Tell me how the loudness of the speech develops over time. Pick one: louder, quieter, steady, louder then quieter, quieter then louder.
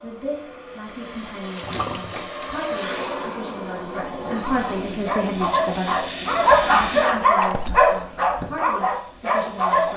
louder then quieter.